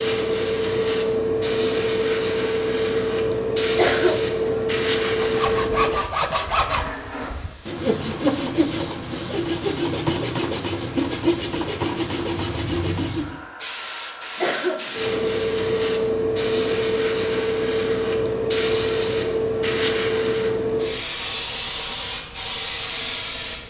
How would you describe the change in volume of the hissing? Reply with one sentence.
The loudness of the hissing goes down, then up.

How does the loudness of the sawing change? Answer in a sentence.
The volume of the sawing stays about the same.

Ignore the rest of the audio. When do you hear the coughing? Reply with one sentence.
The coughing can be heard from 3.8 to 4.7 s and from 14.4 to 15.2 s.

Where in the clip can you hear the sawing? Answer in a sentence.
The sawing can be heard from 5.0 to 13.4 s.